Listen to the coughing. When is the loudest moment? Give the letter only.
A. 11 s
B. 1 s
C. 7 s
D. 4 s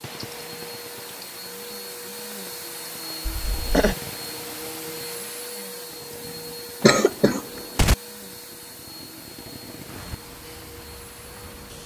C.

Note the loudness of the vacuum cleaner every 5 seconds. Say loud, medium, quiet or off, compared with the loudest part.
loud, loud, medium.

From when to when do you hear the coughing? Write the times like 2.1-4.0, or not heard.
3.2-4.0, 6.8-8.0.